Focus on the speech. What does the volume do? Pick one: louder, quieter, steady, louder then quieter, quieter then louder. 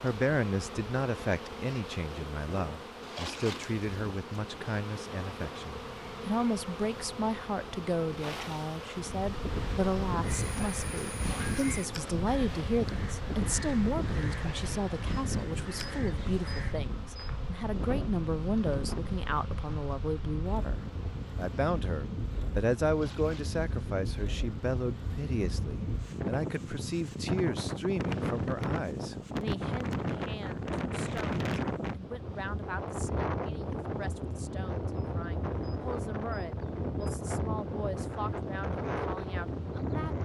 quieter.